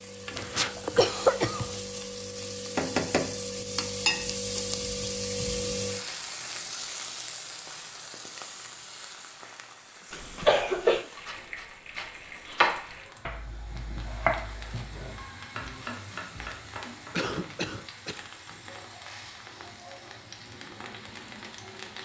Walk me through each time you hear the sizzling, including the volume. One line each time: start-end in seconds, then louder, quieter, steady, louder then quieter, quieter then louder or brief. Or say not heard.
0.0-22.0 quieter.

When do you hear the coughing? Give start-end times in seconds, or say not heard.
0.3-1.8, 10.1-11.1, 17.1-18.2.